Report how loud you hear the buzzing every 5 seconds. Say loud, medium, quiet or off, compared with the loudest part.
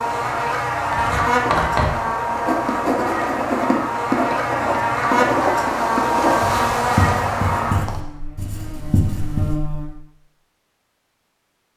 loud, loud, off.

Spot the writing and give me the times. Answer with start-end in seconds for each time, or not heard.
0.9-9.6.